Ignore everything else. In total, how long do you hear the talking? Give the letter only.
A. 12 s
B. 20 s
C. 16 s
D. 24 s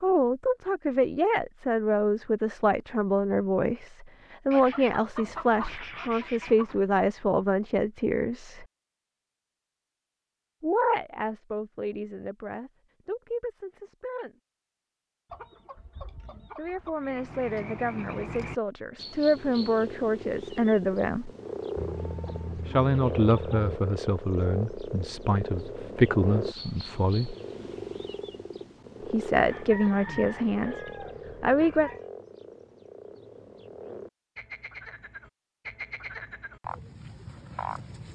D.